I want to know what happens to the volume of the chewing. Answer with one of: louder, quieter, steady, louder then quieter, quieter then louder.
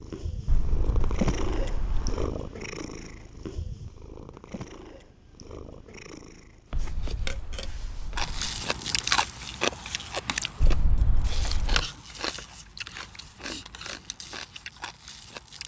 quieter.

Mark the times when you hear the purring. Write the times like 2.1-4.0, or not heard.
0.0-9.2.